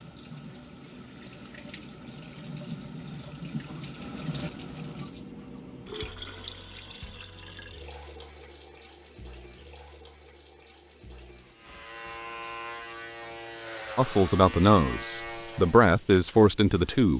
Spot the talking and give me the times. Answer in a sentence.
You can hear the talking from 13.9 to 17.1 s.